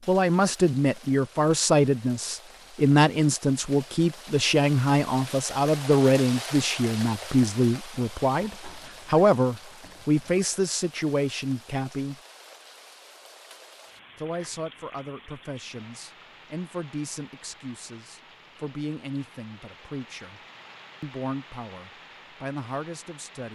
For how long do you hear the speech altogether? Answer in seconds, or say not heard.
21 s.